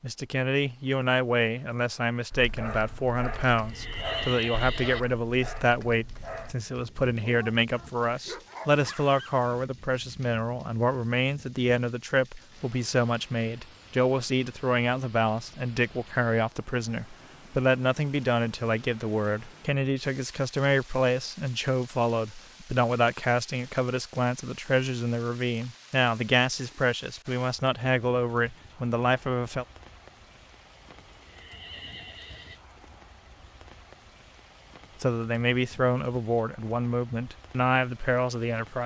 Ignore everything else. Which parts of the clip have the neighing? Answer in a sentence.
The neighing can be heard from 3.5 to 5.0 s and from 31.1 to 32.5 s.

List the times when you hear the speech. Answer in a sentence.
The speech can be heard from 0.0 to 29.6 s and from 35.0 to 38.8 s.